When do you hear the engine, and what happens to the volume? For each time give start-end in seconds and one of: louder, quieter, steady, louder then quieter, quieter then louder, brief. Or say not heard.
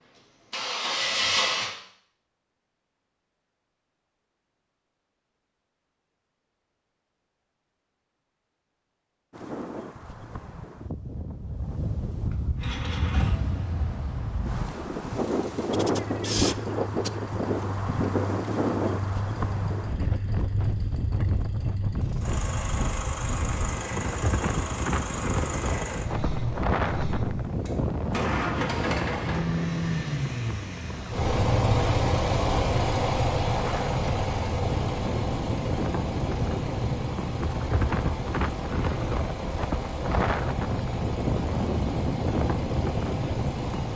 0.0-1.8 brief
12.6-43.9 louder then quieter.